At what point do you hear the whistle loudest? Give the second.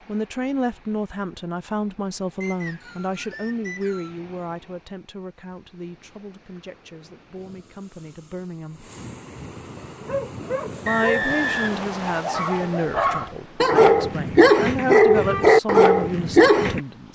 11 s.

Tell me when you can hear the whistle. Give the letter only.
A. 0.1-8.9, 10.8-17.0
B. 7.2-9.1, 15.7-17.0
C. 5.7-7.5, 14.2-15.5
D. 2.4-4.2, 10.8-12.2
D.